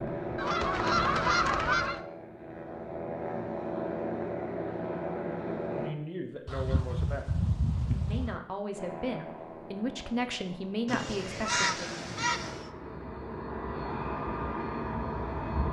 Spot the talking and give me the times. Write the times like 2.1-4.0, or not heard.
5.7-11.9.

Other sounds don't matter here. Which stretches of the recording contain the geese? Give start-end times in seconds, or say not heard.
0.3-2.0, 6.5-8.4, 10.8-12.7.